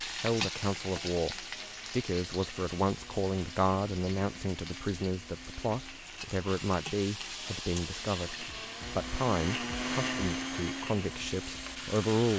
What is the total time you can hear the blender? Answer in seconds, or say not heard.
12 s.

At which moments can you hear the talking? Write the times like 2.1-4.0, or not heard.
0.0-12.3.